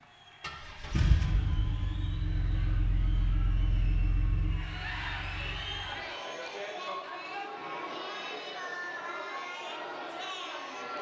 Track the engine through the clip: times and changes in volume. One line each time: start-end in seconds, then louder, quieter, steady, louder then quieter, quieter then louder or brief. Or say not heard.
0.4-6.1 quieter.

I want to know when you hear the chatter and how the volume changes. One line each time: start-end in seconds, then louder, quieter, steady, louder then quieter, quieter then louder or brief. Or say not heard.
0.0-10.9 louder.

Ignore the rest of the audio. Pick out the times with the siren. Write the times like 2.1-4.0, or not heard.
not heard.